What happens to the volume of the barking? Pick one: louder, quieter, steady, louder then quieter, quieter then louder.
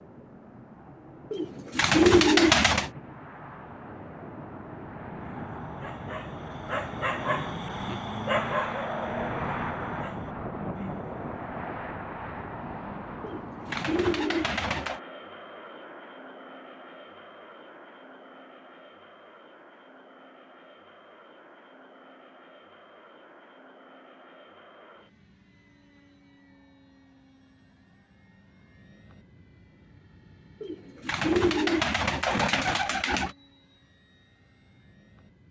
louder then quieter.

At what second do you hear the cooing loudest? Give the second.
2 s.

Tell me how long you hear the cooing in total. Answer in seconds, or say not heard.
6 s.